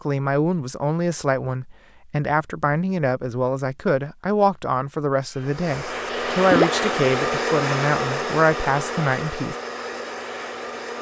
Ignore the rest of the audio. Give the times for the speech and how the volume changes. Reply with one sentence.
The speech can be heard from 0.0 to 9.6 s, at a steady volume.